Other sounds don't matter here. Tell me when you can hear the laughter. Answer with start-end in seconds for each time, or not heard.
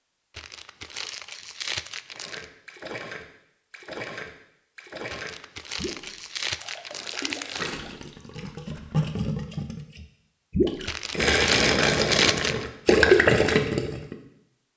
not heard.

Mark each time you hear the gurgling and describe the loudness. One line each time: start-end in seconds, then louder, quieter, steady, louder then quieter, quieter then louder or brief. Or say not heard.
2.1-14.2 louder.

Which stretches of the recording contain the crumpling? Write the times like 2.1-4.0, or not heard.
0.3-2.5, 5.1-7.7, 10.8-12.7.